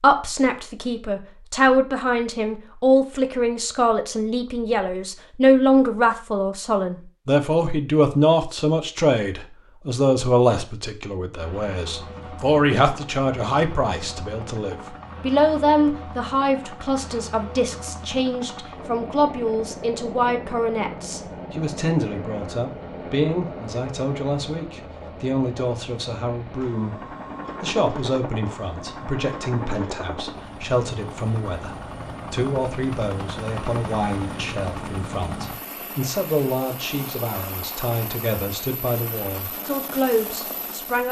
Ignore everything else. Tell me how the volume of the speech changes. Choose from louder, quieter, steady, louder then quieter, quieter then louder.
quieter.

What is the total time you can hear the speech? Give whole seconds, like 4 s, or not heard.
41 s.